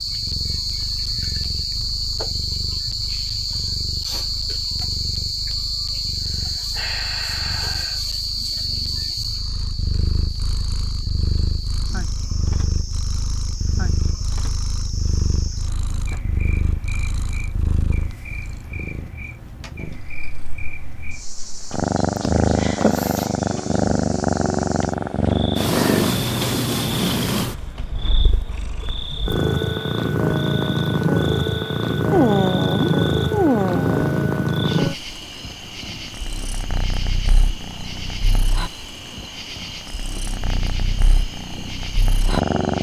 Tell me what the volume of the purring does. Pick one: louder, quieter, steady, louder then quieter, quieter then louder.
louder then quieter.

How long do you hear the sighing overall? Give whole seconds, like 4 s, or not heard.
6 s.